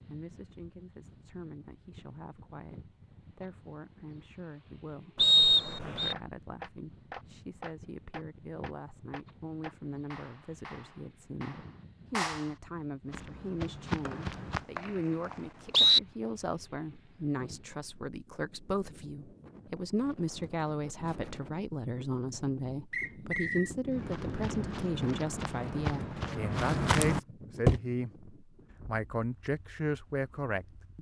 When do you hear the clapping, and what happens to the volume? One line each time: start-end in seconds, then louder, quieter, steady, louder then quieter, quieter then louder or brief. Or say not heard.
6.0-12.4 quieter.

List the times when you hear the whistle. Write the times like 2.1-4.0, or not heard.
5.2-6.2, 14.1-16.0, 22.9-23.7.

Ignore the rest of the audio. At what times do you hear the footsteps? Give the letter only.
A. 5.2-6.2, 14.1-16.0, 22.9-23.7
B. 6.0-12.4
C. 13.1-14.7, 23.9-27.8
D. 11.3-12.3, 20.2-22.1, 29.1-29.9
C.